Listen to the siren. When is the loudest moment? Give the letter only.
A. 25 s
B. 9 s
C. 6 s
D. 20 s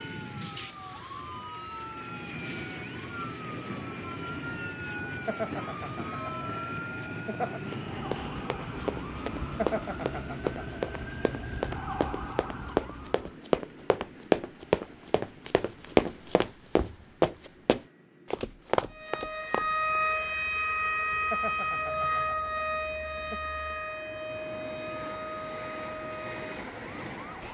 D.